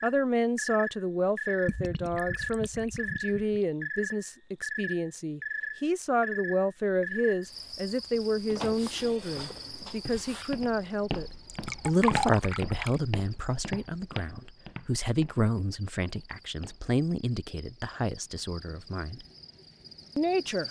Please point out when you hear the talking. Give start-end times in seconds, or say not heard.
0.0-19.2, 20.1-20.6.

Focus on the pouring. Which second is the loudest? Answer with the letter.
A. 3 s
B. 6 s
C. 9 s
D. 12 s
D.